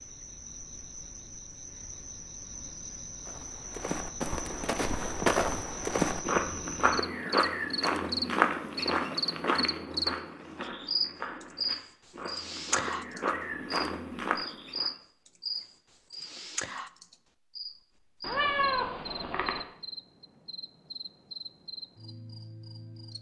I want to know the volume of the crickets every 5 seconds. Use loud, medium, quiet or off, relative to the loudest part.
medium, loud, loud, medium, quiet.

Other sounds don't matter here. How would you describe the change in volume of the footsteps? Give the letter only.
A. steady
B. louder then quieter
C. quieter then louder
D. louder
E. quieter
C.